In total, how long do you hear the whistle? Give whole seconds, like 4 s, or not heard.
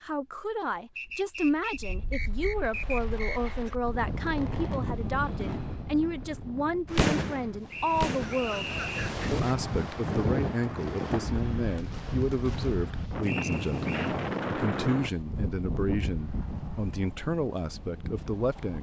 5 s.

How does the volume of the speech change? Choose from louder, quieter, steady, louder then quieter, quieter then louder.
steady.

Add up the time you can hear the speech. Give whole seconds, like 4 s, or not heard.
18 s.